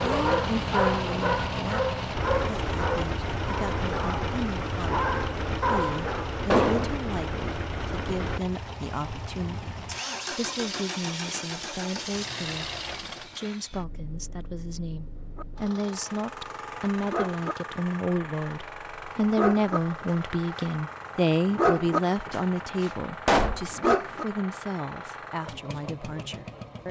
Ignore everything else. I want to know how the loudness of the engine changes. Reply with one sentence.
The volume of the engine goes down.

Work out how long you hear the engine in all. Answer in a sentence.
The engine can be heard for 27 seconds in total.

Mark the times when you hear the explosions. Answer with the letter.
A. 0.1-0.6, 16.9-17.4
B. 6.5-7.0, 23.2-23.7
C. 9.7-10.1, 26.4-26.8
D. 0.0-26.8
B.